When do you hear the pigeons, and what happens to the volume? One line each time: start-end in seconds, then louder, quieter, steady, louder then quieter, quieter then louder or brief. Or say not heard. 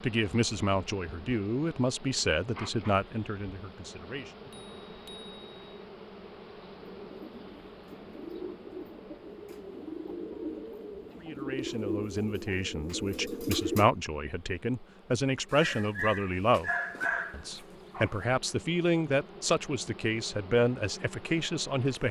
6.8-13.9 louder.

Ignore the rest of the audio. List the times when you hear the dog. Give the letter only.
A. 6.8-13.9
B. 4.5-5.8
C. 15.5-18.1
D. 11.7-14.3
C.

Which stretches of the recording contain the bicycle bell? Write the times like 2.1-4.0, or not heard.
4.5-5.8.